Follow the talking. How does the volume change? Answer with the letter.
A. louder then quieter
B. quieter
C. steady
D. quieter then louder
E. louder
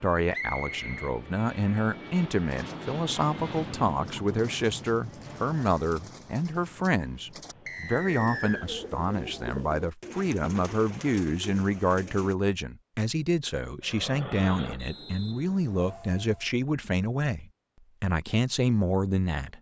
C.